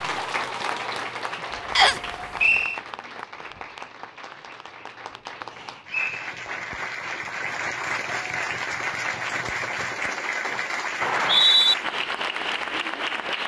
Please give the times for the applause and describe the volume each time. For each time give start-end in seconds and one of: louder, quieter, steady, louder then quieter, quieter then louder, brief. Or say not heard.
0.0-13.4 quieter then louder.